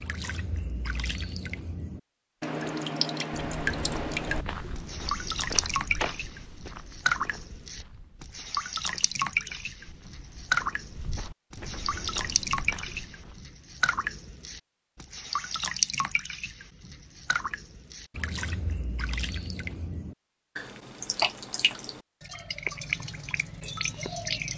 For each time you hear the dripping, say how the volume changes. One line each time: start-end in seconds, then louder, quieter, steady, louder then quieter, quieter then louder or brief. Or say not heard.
0.0-24.5 steady.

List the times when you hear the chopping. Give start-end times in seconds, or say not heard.
not heard.